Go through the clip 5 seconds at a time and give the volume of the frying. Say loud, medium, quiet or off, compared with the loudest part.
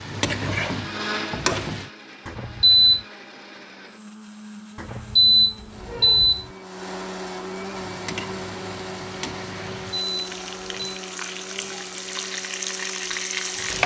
loud, medium, loud.